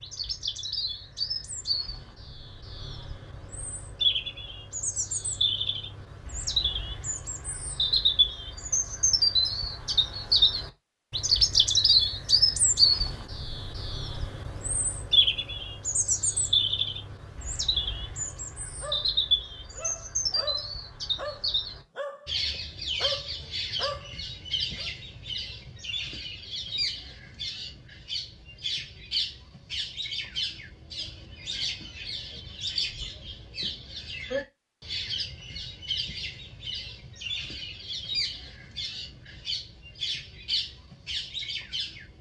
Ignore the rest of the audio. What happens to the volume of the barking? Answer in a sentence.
The loudness of the barking goes up.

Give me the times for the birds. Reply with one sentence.
The birds can be heard from 0.0 to 42.1 s.